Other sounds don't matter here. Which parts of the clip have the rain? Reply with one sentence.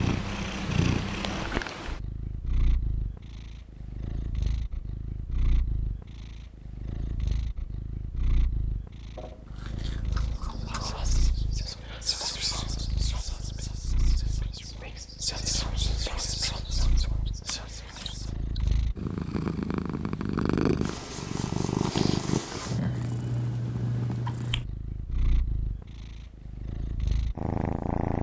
You can't hear the rain here.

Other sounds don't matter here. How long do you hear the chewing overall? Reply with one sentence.
You can hear the chewing for 3 seconds altogether.